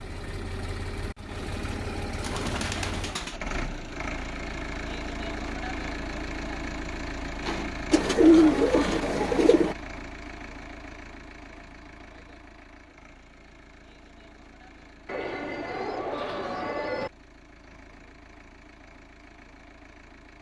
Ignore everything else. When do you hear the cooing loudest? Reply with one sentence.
The loudest moment of the cooing is at 8 seconds.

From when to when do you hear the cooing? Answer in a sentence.
The cooing can be heard from 2.2 to 3.4 s, from 7.9 to 9.8 s and from 15.1 to 17.1 s.